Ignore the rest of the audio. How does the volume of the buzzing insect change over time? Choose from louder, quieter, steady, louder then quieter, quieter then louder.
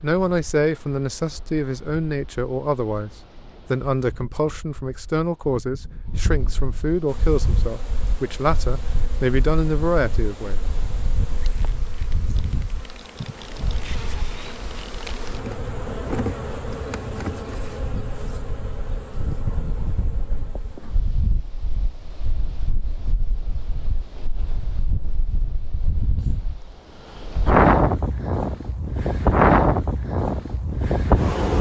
louder then quieter.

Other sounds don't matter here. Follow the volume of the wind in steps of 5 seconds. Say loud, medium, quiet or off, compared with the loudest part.
quiet, quiet, quiet, quiet, quiet, loud, loud.